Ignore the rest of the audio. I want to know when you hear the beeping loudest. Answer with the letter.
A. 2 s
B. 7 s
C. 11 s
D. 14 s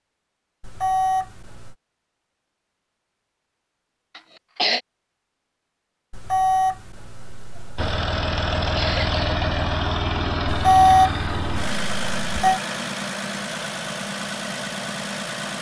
C.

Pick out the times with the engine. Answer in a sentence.
The engine can be heard from 7.8 to 15.5 s.